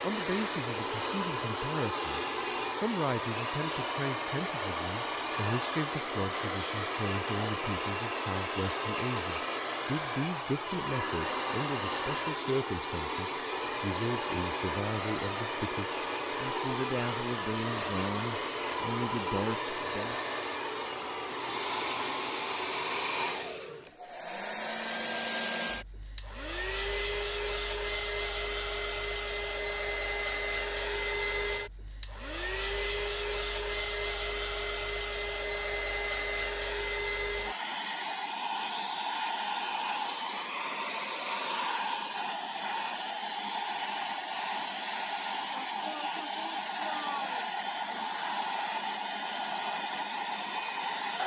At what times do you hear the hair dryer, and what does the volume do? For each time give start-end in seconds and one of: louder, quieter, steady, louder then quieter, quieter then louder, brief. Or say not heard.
0.0-51.2 steady.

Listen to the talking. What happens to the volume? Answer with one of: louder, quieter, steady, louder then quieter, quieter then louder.
steady.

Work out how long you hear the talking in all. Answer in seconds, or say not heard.
20 s.